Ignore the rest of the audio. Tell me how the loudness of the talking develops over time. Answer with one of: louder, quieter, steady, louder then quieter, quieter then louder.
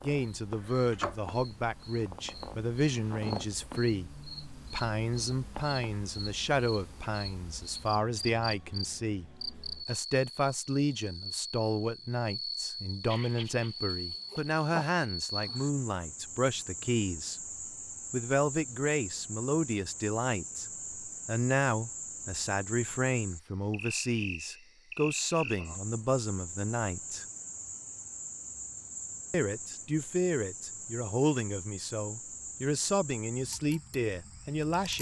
steady.